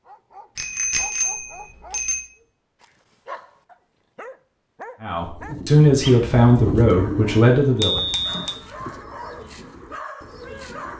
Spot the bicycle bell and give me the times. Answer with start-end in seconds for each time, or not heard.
0.6-2.2, 7.8-8.6.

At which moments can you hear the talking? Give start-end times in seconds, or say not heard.
5.0-8.1.